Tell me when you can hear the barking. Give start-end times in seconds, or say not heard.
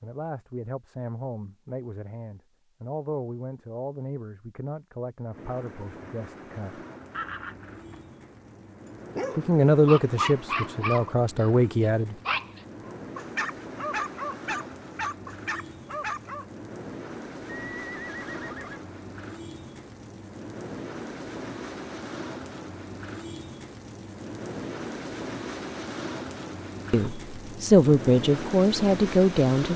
9.2-16.4.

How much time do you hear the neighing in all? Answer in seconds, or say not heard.
2 s.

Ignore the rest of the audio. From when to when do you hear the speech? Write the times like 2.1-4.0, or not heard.
0.0-6.8, 9.3-12.2, 26.9-29.7.